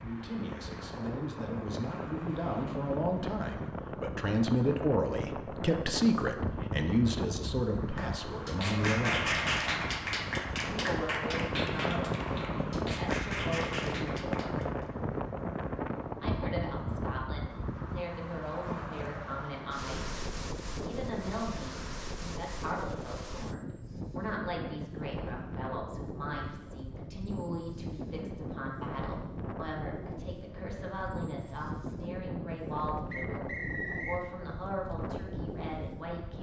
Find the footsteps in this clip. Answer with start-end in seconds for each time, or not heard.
not heard.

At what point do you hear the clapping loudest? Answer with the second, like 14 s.
9 s.